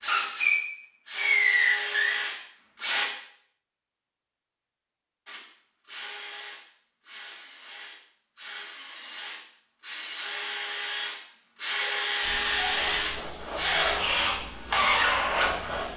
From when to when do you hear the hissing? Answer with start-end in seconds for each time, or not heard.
12.2-15.9.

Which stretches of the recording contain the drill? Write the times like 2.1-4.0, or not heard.
0.0-3.1, 5.2-15.8.